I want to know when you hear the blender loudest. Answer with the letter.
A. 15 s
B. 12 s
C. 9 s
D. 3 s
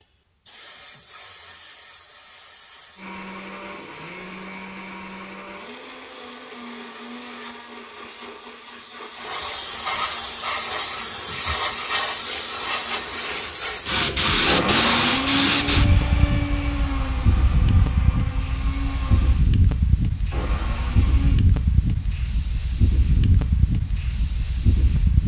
A.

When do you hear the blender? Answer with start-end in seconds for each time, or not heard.
3.0-21.4.